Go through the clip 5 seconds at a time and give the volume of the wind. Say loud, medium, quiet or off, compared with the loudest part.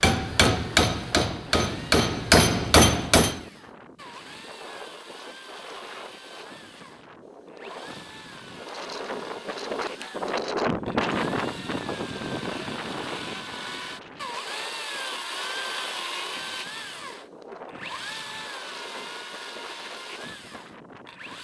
quiet, medium, loud, quiet, quiet.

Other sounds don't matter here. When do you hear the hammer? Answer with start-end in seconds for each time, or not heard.
0.0-3.4.